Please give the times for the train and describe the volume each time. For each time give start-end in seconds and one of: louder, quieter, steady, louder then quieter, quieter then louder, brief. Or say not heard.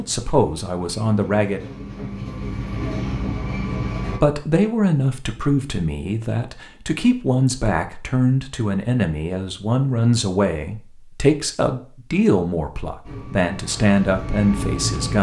0.0-4.2 louder
13.1-15.1 brief.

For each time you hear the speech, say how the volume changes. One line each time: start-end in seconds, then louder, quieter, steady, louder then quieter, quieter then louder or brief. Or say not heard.
0.0-1.6 brief
4.1-15.1 steady.